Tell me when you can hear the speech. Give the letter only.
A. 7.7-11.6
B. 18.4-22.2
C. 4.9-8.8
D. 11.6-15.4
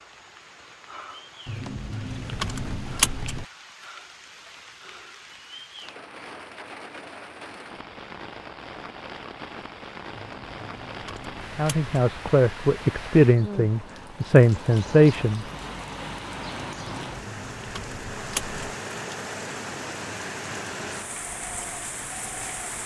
D.